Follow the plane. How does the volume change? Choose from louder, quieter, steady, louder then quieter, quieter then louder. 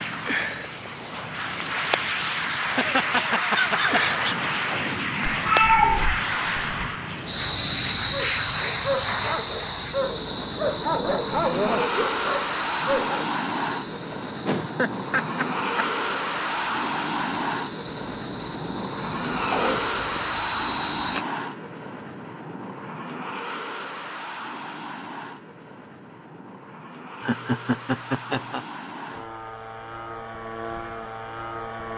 quieter.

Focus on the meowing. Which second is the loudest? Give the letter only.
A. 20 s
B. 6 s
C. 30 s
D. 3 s
B.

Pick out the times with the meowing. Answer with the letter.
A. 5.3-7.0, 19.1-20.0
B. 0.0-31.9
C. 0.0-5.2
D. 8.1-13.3
A.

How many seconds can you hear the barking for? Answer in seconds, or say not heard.
5 s.